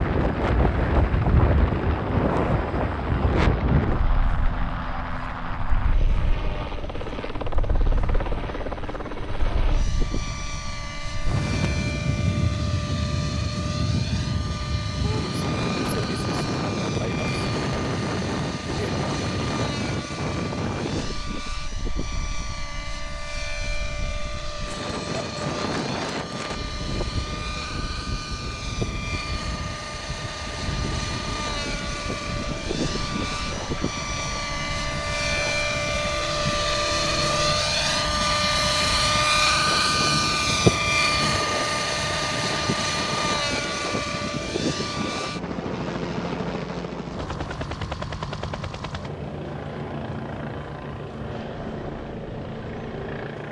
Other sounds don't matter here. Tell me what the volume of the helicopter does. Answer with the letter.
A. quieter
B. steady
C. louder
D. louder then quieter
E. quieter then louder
D.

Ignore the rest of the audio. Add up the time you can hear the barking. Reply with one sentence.
The barking can't be heard in this clip.